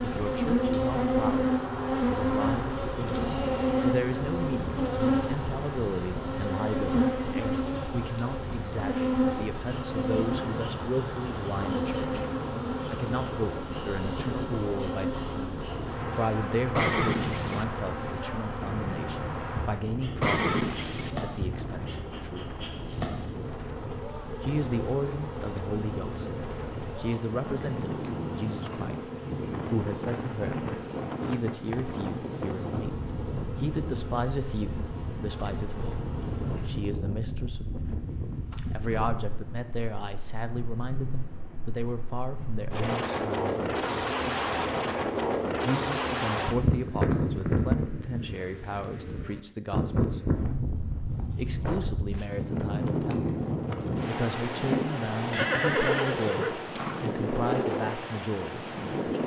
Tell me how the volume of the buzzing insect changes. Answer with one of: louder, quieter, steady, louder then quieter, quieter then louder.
quieter.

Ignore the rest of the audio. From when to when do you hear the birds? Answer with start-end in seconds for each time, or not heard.
not heard.